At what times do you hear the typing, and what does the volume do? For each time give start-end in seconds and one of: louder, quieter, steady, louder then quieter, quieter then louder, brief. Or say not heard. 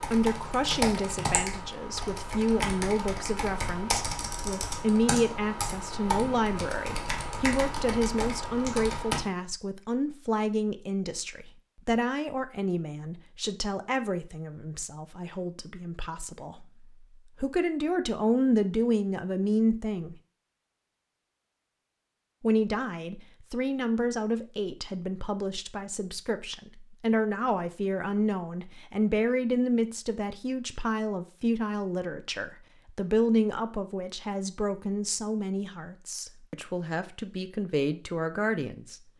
0.0-9.2 steady.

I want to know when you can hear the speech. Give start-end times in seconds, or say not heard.
0.1-16.6, 17.4-20.1, 22.4-39.0.